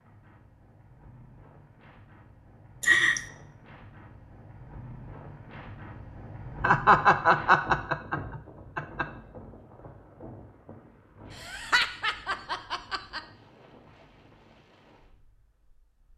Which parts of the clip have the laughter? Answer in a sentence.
You can hear the laughter from 2.8 to 3.2 s, from 6.6 to 9.1 s and from 11.3 to 13.2 s.